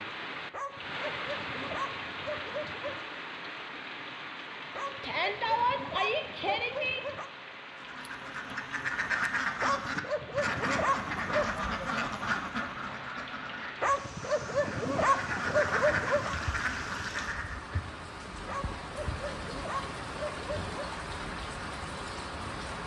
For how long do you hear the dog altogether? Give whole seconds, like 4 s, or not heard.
12 s.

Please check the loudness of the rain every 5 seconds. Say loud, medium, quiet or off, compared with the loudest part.
loud, medium, medium, loud, loud.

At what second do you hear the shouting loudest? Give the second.
6 s.